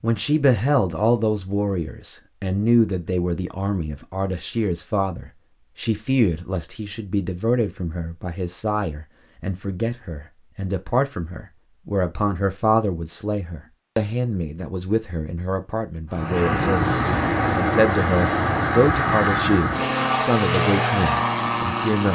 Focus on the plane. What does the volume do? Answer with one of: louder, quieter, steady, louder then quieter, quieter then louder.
steady.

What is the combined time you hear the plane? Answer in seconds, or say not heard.
6 s.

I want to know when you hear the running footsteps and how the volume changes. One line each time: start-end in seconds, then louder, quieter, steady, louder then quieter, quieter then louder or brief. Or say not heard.
not heard.